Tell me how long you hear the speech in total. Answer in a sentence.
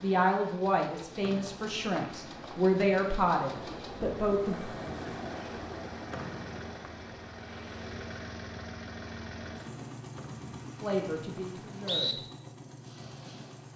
The speech can be heard for 6 seconds in total.